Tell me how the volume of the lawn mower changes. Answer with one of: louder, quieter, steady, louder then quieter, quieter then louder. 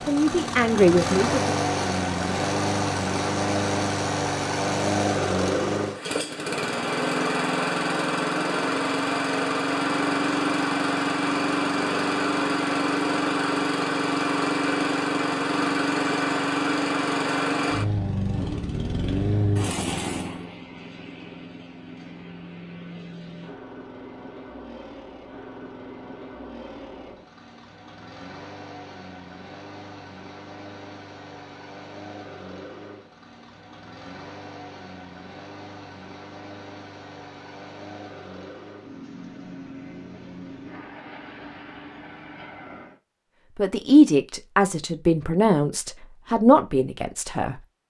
quieter.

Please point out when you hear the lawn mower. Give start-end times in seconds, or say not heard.
0.0-43.0.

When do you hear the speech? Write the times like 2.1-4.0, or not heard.
0.1-1.6, 43.5-47.5.